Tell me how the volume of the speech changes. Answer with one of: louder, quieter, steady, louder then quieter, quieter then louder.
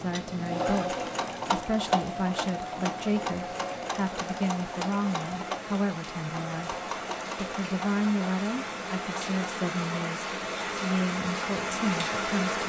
steady.